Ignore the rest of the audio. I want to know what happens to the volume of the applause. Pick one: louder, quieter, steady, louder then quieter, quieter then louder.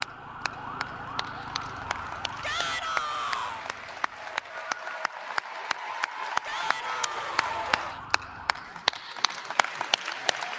louder.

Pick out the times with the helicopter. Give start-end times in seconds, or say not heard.
not heard.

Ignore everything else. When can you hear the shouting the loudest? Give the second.
3 s.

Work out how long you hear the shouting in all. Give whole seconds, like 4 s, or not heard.
3 s.